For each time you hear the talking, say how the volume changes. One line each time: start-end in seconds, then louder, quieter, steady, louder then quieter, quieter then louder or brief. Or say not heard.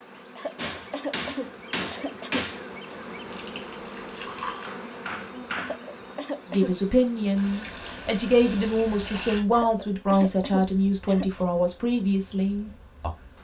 6.5-13.4 steady.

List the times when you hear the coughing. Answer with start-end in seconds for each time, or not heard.
0.3-2.6, 5.6-6.8, 9.5-11.4.